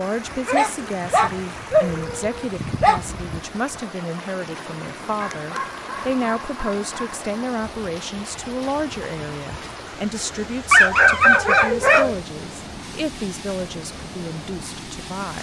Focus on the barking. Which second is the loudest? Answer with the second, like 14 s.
11 s.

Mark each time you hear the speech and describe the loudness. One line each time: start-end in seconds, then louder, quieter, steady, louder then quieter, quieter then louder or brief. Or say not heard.
0.0-15.3 steady.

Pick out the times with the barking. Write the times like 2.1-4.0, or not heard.
0.5-3.0, 5.2-7.2, 10.7-12.2.